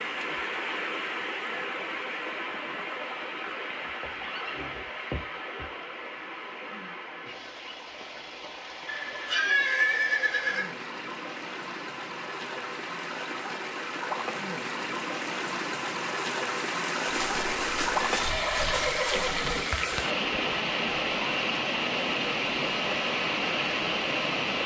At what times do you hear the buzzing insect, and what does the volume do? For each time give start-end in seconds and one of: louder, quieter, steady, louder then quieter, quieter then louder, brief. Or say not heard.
not heard.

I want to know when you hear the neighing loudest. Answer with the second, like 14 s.
10 s.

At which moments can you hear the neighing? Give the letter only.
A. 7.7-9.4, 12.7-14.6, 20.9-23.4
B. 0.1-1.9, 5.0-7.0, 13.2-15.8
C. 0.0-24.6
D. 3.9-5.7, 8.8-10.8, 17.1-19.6
D.